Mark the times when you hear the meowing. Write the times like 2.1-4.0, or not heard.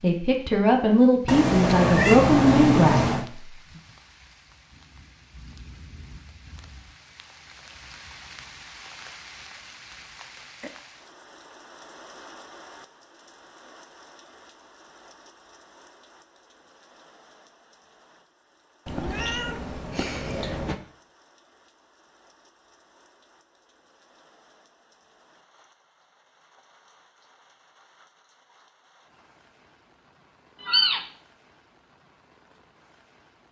1.2-3.2, 18.9-20.8, 30.6-31.1.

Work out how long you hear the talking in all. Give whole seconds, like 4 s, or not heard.
3 s.